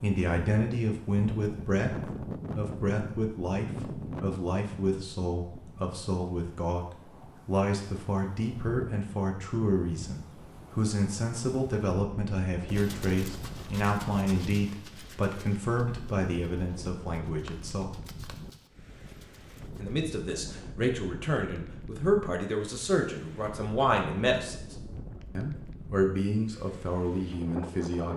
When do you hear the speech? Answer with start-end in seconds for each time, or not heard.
0.0-18.1, 19.8-24.8, 25.4-28.1.